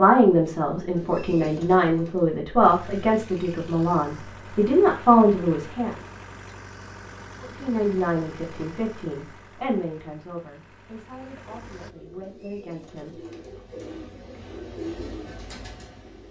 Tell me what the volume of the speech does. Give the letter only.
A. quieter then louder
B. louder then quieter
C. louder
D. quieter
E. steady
D.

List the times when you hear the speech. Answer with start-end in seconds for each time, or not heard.
0.0-6.0, 7.4-13.1.